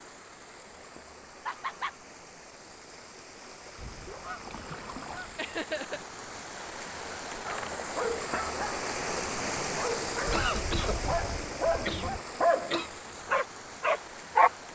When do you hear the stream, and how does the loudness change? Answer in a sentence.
The stream can be heard from 0.0 to 14.7 s, getting louder then quieter.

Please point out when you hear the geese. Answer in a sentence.
You can hear the geese from 3.8 to 5.4 s and from 10.2 to 12.2 s.